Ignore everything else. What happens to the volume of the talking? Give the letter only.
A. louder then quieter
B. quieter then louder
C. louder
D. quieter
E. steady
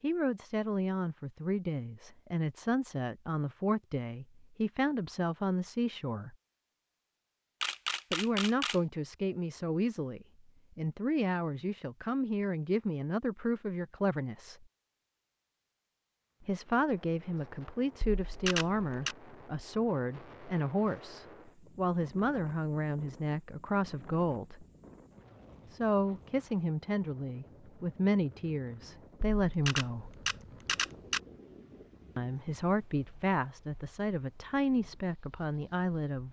E.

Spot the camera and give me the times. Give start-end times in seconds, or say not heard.
7.6-8.8, 18.0-19.1, 29.4-31.2.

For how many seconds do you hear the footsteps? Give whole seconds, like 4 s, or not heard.
not heard.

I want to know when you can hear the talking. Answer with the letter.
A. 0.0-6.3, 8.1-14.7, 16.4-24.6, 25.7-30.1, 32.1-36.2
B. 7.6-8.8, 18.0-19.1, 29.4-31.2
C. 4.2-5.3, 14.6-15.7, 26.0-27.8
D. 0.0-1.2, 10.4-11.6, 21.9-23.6
A.